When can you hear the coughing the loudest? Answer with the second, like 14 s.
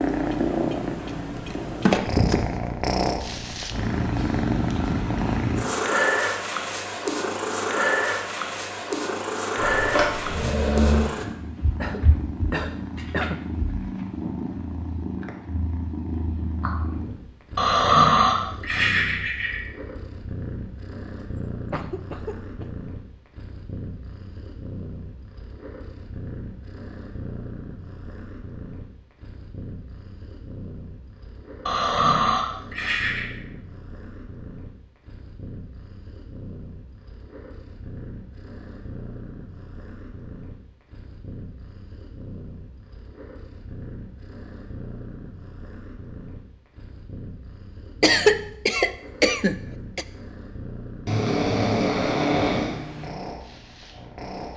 48 s.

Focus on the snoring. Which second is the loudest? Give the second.
18 s.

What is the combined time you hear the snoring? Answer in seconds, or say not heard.
7 s.